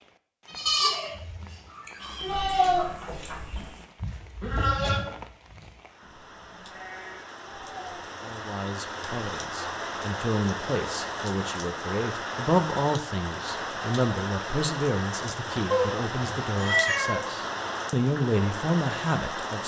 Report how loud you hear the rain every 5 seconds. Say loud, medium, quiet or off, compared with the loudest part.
quiet, medium, loud, loud.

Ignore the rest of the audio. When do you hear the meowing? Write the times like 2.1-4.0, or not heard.
2.0-3.9, 15.7-17.2.